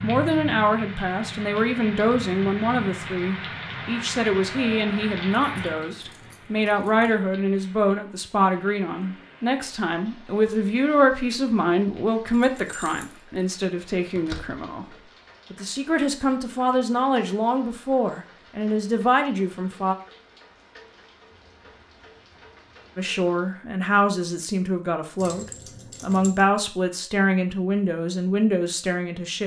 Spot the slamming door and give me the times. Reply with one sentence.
You can hear the slamming door from 14.2 to 14.7 s.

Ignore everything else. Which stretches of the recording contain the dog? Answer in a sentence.
The dog can't be heard in this clip.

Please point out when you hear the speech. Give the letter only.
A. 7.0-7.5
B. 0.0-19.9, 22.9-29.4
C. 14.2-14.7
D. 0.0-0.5
B.